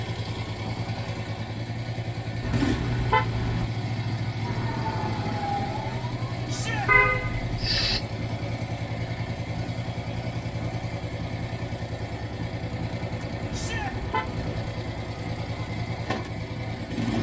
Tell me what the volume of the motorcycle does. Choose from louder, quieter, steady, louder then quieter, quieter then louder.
steady.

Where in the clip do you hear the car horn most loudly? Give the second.
7 s.